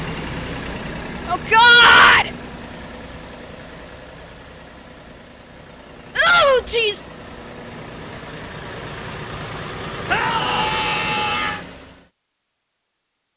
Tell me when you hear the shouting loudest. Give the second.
2 s.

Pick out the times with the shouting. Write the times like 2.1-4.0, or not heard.
1.2-2.3, 6.2-7.0, 10.1-11.6.